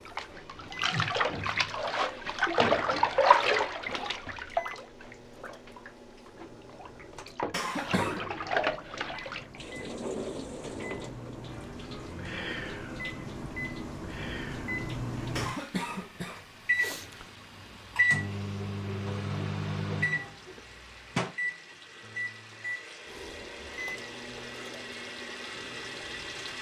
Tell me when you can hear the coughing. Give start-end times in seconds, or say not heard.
7.5-8.2, 15.3-17.2.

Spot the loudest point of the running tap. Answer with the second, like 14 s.
3 s.